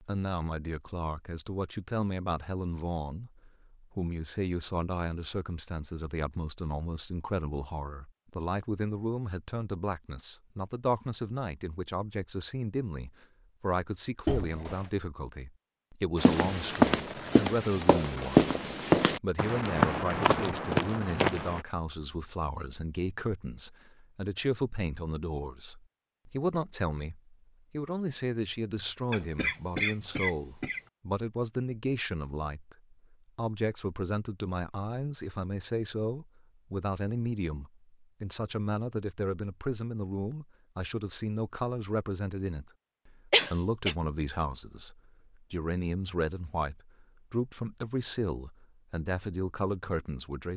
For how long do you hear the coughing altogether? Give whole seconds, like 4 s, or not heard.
3 s.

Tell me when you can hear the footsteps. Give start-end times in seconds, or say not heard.
16.1-21.6.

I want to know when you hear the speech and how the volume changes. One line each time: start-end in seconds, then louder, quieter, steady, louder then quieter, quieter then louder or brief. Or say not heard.
0.0-50.5 steady.